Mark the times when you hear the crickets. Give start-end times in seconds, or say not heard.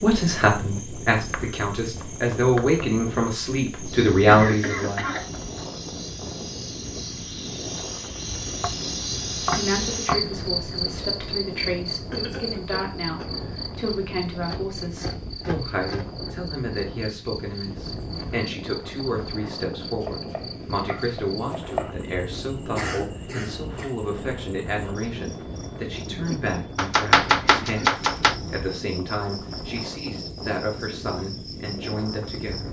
0.0-32.6.